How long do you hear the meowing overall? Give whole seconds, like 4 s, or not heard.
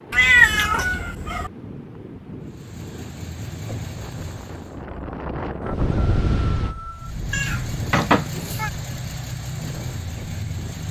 3 s.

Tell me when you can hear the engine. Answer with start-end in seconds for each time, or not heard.
2.5-4.8, 6.9-10.8.